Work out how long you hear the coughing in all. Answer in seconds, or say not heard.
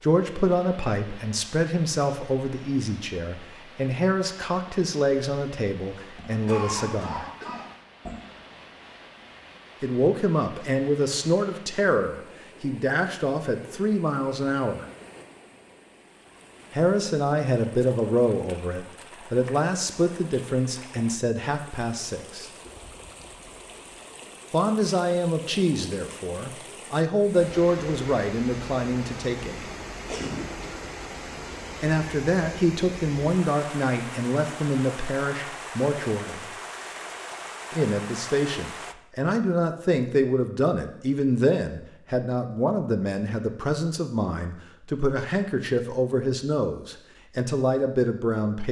3 s.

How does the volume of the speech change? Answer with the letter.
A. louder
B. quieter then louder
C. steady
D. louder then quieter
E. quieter
C.